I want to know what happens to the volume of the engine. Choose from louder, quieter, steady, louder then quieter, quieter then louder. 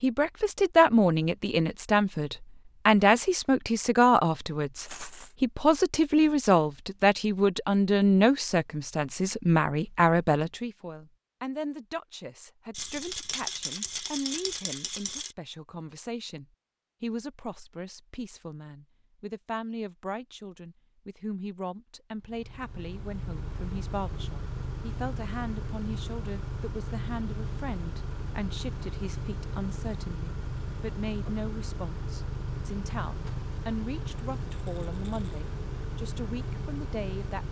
steady.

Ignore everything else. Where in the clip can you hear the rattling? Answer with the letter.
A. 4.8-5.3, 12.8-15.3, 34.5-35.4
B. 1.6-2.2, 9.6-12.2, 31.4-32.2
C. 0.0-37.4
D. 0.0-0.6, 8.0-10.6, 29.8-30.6
A.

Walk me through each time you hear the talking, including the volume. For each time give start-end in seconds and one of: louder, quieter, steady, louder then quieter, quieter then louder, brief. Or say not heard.
0.0-37.4 quieter.